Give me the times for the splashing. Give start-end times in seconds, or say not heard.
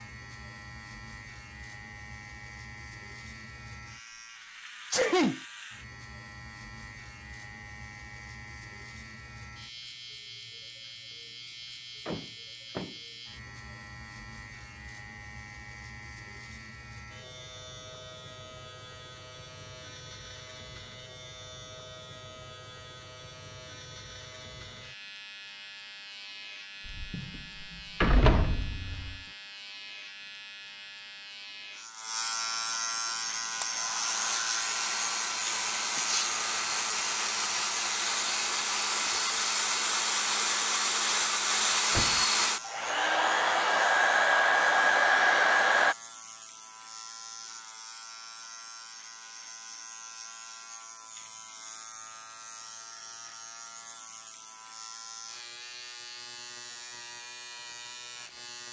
not heard.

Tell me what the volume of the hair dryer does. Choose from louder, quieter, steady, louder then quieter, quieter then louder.
louder.